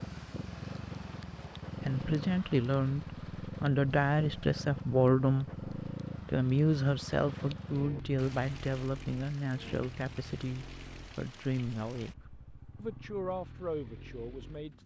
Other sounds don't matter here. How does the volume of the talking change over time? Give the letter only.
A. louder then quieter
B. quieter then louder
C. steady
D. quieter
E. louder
D.